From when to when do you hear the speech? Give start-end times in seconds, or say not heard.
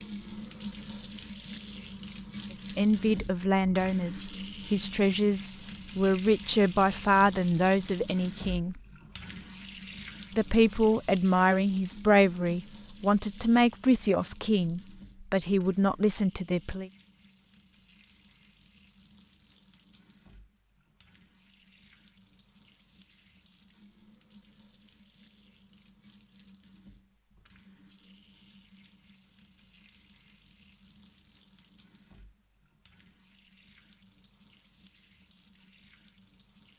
2.5-8.8, 10.3-16.9.